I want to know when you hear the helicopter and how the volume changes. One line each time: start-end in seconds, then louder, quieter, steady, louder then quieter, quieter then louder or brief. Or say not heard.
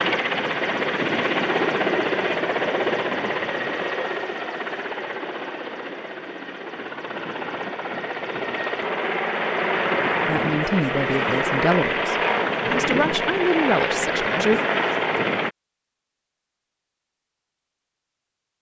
0.0-15.5 quieter then louder.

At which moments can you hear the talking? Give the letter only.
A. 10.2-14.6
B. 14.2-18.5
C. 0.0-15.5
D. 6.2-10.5
A.